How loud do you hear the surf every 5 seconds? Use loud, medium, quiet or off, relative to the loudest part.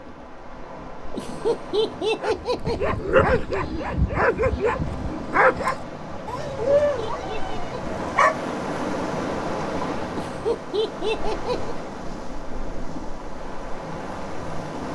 medium, loud, loud.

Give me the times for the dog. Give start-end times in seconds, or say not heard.
2.2-8.6.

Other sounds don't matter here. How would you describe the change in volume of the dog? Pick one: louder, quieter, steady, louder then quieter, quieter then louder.
quieter.